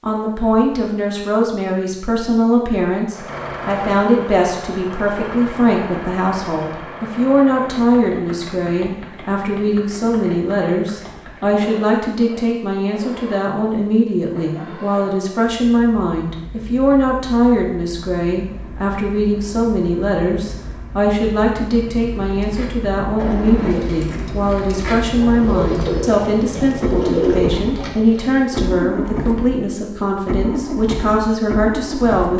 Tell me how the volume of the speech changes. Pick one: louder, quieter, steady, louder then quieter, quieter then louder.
steady.